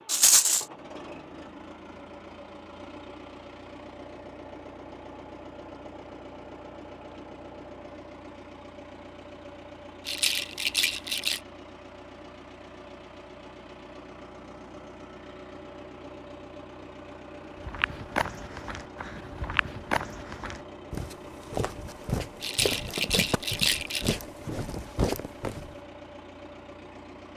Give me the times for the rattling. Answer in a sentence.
The rattling can be heard from 0.1 to 0.7 s, from 10.1 to 11.4 s and from 22.4 to 24.1 s.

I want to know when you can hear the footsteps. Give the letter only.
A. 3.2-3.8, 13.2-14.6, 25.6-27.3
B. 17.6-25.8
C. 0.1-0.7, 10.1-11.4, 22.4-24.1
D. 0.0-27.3
B.